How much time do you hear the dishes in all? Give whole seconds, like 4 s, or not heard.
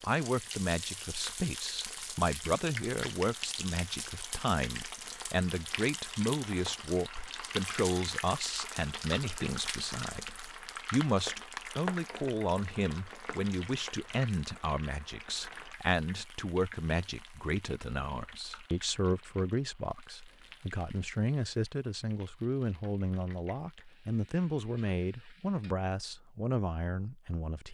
not heard.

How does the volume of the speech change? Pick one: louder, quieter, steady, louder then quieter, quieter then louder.
steady.